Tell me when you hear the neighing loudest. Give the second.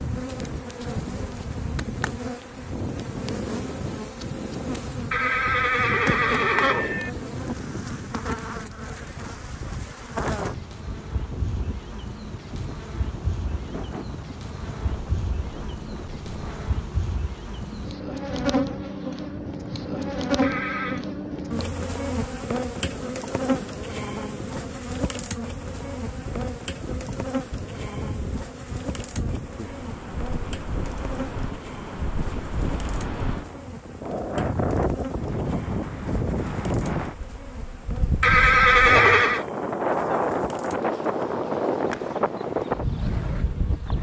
39 s.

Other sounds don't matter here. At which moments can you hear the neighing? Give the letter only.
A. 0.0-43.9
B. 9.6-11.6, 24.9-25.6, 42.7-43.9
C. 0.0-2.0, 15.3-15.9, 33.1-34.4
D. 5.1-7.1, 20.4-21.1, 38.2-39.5
D.